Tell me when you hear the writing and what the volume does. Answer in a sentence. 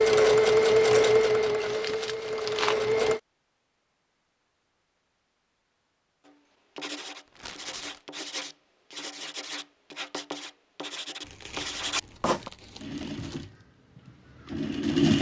You can hear the writing from 6.2 to 12.5 s, getting louder.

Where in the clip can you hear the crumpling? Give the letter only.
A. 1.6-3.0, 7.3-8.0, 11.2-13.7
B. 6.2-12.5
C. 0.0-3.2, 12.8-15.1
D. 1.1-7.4
A.